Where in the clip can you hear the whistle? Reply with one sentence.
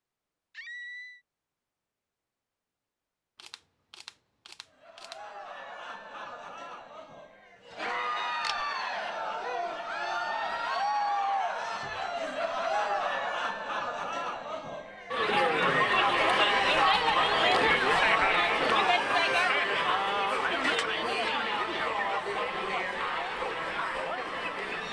You can't hear the whistle here.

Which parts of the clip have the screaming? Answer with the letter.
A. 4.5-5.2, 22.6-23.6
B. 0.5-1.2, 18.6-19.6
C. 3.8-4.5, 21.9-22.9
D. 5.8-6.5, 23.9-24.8
B.